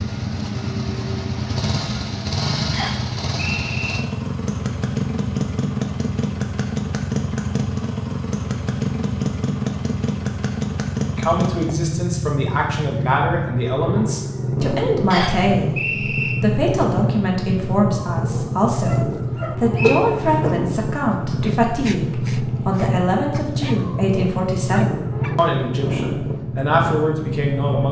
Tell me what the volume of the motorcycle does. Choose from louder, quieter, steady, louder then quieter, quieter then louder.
steady.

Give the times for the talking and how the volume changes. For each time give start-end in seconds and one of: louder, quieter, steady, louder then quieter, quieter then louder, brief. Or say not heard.
11.1-27.8 steady.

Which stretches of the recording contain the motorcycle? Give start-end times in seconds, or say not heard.
0.0-27.8.